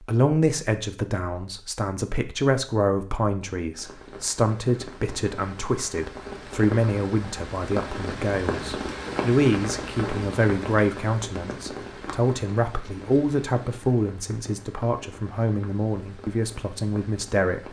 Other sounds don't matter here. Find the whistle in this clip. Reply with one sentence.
You can't hear the whistle here.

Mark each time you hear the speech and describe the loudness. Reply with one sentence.
The speech can be heard from 0.0 to 17.6 s, at a steady volume.